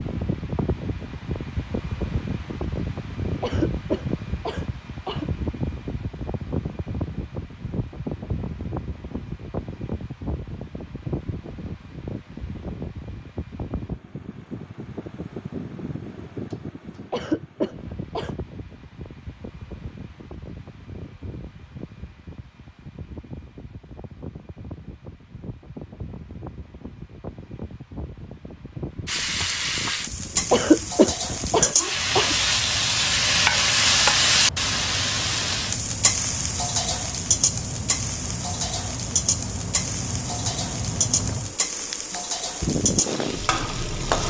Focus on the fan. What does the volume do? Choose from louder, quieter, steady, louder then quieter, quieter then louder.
quieter then louder.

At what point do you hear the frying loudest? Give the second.
34 s.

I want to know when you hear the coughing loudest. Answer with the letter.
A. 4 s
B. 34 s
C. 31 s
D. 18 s
C.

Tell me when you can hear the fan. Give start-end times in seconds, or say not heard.
0.0-44.2.